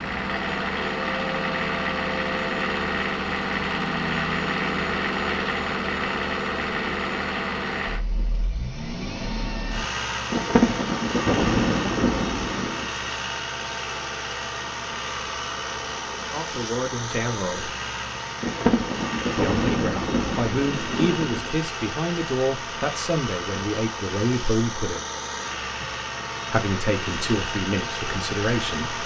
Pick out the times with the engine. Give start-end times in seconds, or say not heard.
0.0-29.0.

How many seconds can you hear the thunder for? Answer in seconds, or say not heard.
6 s.